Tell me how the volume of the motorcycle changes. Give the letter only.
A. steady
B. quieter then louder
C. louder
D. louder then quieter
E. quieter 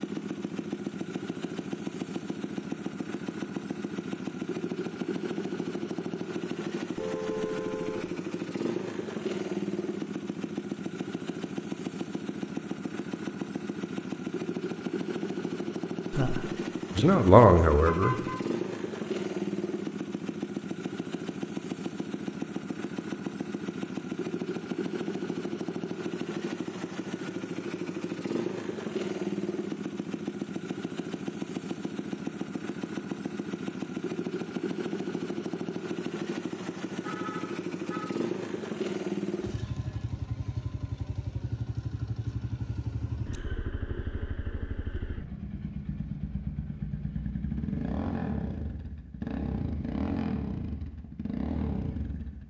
A.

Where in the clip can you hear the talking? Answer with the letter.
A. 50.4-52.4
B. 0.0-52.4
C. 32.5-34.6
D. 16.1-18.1
D.